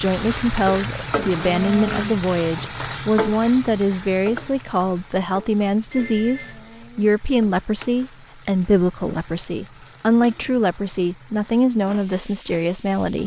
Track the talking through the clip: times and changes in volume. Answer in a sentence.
The talking can be heard from 0.0 to 13.2 s, at a steady volume.